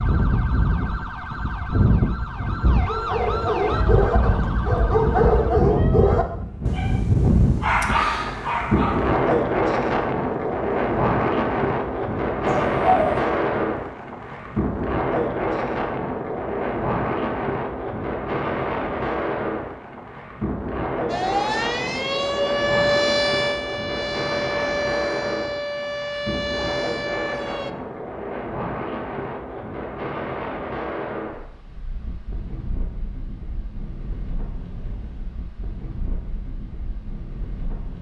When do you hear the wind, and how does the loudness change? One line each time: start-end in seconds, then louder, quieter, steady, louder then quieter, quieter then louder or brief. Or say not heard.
0.0-37.9 quieter.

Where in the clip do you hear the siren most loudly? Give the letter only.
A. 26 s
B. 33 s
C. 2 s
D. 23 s
D.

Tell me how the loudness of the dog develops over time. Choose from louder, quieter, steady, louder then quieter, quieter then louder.
quieter then louder.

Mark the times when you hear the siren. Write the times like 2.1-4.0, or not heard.
0.0-5.5, 21.1-27.7.